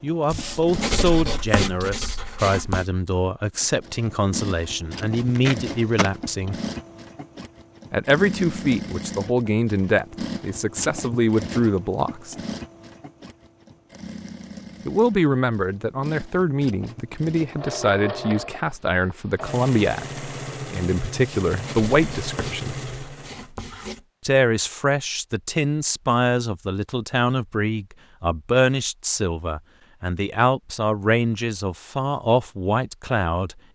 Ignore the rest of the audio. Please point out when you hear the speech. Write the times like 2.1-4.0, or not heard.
0.0-6.5, 7.9-12.3, 14.8-22.8, 24.2-33.7.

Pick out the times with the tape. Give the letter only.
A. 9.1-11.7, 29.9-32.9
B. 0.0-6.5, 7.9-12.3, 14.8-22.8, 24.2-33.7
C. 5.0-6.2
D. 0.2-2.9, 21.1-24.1
C.